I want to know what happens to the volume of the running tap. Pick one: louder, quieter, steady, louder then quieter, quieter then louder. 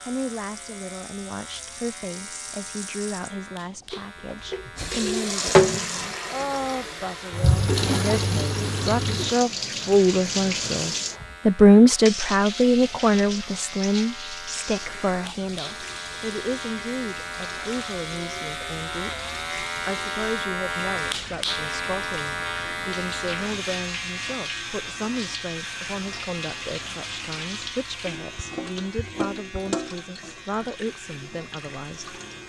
quieter.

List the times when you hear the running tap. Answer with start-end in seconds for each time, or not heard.
0.0-32.4.